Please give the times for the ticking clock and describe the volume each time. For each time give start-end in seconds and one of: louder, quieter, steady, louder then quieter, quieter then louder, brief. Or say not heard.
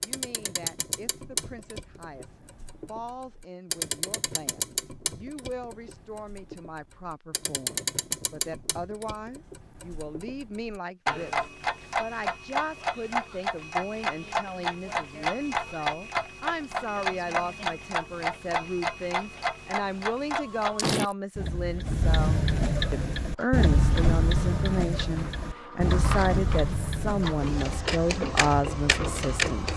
0.0-29.5 louder.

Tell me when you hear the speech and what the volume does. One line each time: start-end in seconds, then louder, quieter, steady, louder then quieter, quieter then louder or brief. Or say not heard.
0.0-29.7 louder.